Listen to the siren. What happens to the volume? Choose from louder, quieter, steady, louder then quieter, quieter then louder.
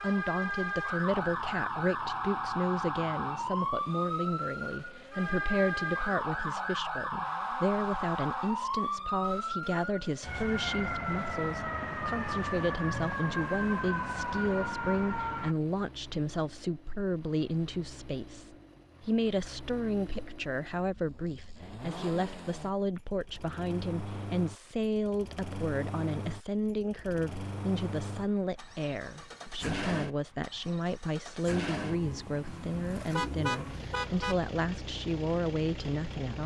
steady.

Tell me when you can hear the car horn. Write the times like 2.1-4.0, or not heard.
32.5-34.4.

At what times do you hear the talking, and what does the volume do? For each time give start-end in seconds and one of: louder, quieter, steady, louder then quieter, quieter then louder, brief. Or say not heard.
0.0-36.4 steady.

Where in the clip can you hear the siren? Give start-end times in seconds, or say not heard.
0.0-15.6.